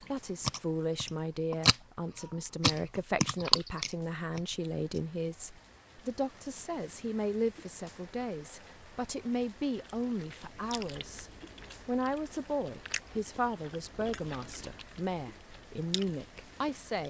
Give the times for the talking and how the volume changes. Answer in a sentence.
You can hear the talking from 0.0 to 17.0 s, at a steady volume.